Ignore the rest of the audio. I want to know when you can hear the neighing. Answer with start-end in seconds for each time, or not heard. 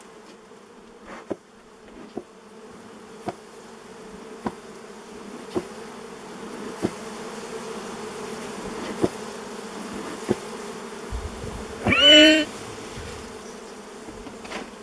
11.1-12.4.